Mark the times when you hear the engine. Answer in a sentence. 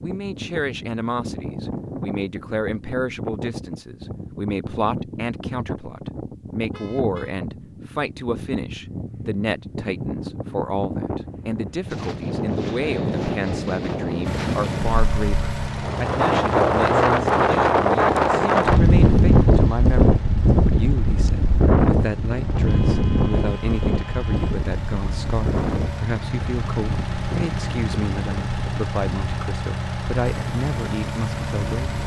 You can hear the engine from 14.2 to 32.0 s.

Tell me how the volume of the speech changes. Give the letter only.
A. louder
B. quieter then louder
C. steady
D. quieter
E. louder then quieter
C.